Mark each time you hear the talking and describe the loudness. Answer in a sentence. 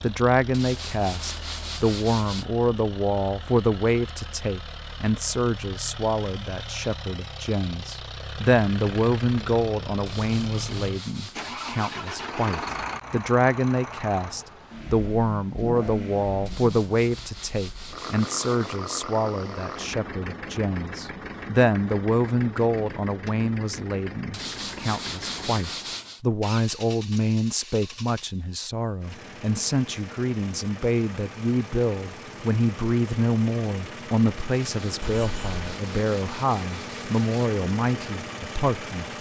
The talking can be heard from 0.0 to 39.1 s, at a steady volume.